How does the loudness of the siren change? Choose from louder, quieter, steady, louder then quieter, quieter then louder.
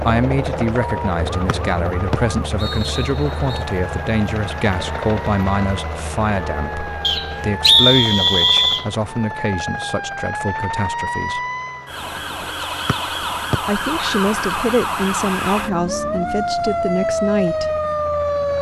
louder.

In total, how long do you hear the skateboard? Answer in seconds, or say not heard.
not heard.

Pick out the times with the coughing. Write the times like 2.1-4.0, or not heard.
not heard.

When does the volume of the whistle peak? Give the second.
8 s.